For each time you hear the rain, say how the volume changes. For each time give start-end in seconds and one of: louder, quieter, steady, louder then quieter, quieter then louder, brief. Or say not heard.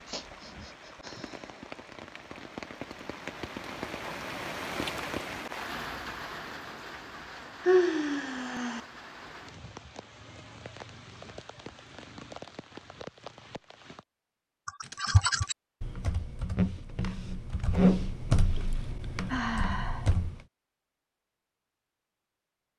0.0-14.1 louder then quieter.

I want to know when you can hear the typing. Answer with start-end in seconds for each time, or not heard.
14.7-20.4.